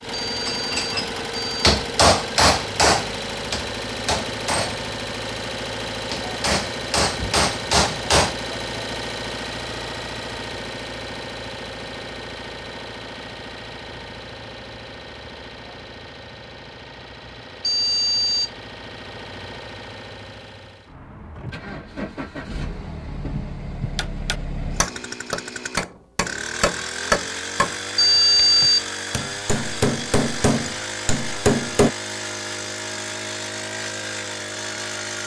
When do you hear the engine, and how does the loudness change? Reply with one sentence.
You can hear the engine from 0.0 to 35.2 s, getting quieter then louder.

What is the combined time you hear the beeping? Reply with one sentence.
You can hear the beeping for 3 seconds altogether.